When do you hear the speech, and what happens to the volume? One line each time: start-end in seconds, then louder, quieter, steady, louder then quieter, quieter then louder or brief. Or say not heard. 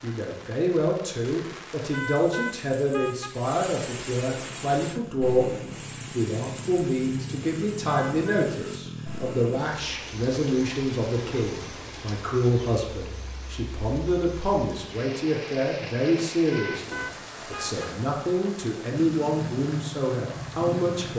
0.0-5.5 steady
6.2-21.1 steady.